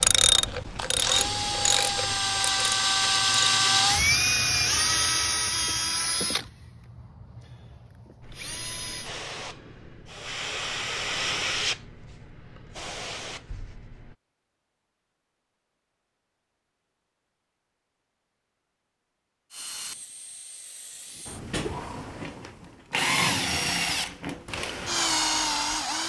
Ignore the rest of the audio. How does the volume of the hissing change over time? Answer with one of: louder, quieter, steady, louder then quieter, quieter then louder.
louder then quieter.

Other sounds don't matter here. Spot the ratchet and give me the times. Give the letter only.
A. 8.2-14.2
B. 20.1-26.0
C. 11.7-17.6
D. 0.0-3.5
D.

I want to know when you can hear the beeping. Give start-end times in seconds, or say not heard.
not heard.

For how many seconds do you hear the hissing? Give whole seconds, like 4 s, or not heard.
6 s.